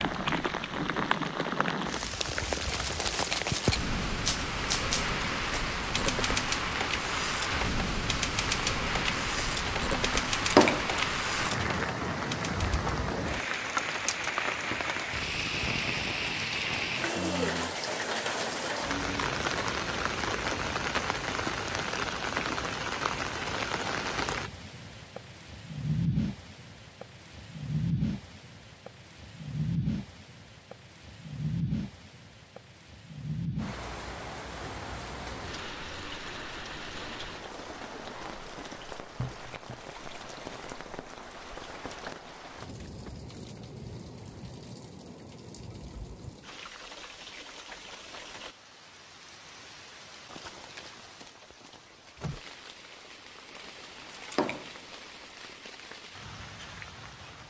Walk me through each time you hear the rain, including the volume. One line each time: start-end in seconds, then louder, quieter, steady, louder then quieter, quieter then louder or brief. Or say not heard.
0.0-57.4 quieter.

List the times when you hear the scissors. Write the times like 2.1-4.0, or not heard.
10.3-11.1, 54.1-54.7.